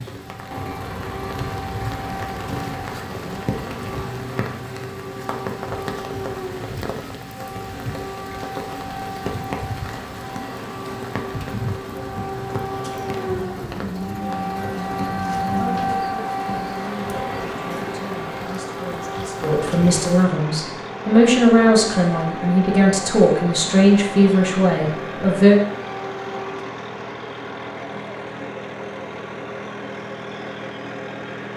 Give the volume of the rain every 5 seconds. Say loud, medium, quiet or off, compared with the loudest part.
loud, loud, loud, medium, off, off, off.